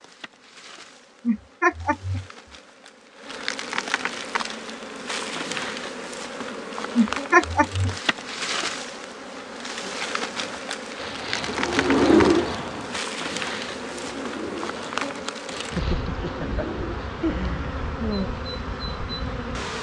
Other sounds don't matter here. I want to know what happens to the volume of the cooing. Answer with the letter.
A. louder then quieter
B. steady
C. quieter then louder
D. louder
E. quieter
A.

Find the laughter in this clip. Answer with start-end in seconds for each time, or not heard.
1.2-2.2, 7.0-8.0, 15.7-18.3.